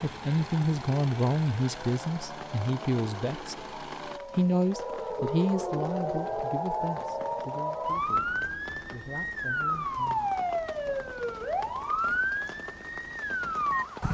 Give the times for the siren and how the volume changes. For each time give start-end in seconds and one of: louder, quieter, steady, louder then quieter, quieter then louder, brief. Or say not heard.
0.2-14.0 louder.